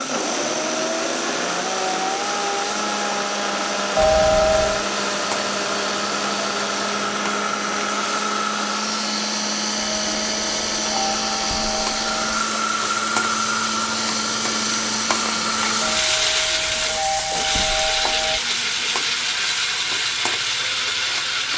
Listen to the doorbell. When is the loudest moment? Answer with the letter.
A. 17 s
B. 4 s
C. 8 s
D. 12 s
B.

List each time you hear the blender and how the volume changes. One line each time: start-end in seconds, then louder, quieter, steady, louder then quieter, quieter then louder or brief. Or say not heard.
0.0-21.5 steady.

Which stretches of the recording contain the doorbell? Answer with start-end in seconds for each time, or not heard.
4.0-4.8, 9.8-12.4, 15.8-18.4.